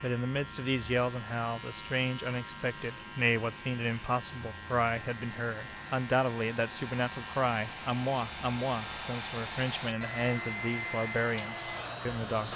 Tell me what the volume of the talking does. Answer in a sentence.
The loudness of the talking stays about the same.